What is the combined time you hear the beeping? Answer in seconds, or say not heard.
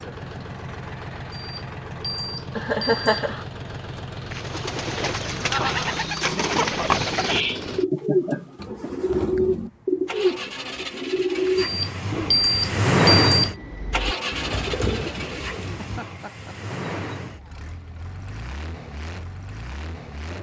4 s.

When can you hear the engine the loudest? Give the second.
13 s.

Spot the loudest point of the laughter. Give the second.
3 s.